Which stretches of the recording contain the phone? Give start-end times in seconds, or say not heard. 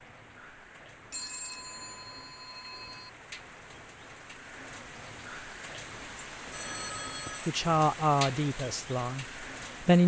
1.1-3.1, 6.5-7.5.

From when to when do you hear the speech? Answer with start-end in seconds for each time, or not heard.
7.5-10.0.